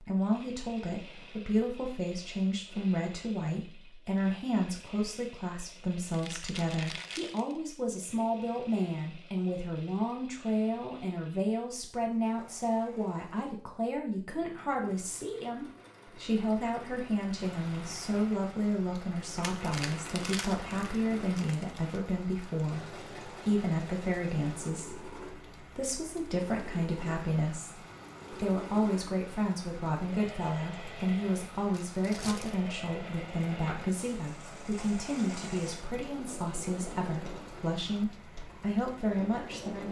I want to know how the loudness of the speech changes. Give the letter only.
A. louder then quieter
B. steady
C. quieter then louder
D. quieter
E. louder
B.